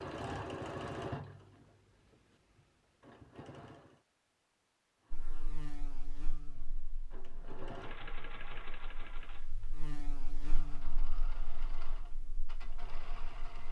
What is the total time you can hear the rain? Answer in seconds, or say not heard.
not heard.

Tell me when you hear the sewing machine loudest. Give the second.
1 s.